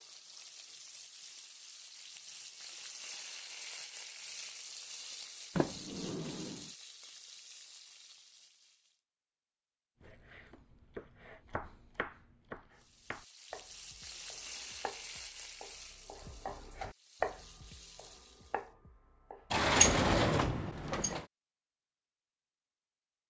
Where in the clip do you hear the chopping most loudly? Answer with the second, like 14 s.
17 s.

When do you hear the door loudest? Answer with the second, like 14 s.
20 s.